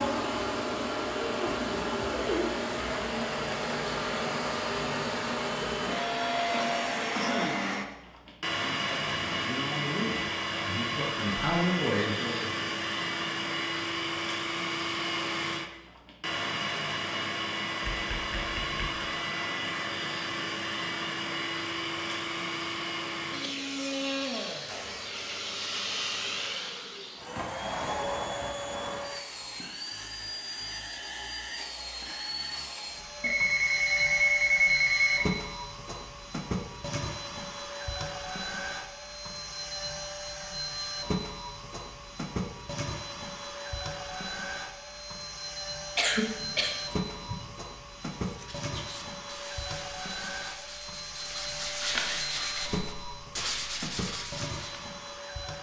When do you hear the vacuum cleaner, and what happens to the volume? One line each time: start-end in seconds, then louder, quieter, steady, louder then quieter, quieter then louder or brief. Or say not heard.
0.0-55.5 quieter.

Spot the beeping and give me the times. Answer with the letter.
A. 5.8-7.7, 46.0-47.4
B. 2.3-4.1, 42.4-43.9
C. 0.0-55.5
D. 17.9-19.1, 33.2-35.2
D.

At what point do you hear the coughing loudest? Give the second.
46 s.